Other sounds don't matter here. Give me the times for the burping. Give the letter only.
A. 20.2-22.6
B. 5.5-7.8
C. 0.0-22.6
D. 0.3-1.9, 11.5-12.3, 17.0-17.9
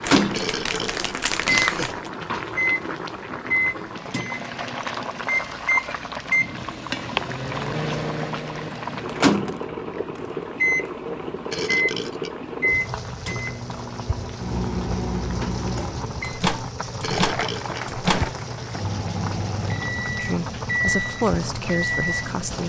D.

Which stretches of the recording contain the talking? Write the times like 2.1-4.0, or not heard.
20.2-22.6.